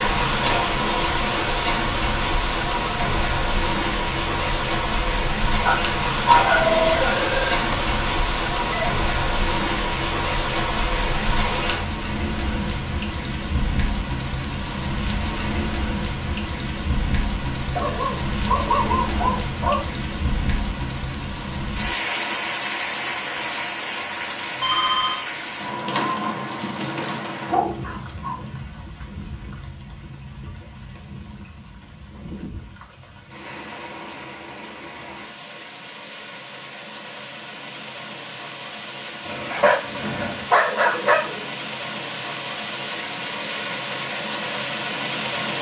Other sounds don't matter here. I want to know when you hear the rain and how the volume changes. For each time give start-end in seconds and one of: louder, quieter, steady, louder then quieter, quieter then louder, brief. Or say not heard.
0.0-45.5 quieter then louder.